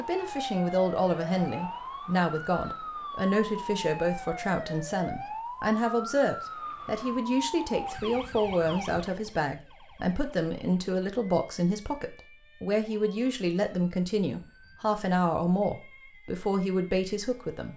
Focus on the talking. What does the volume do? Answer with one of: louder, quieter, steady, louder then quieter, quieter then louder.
steady.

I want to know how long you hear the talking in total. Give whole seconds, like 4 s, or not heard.
18 s.